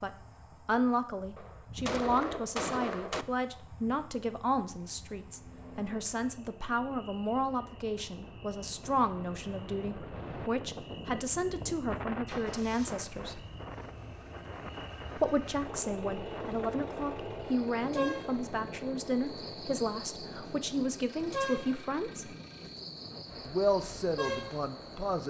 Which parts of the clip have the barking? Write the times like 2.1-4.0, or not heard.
not heard.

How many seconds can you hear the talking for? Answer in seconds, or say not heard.
22 s.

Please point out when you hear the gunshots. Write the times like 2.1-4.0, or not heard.
1.4-3.2.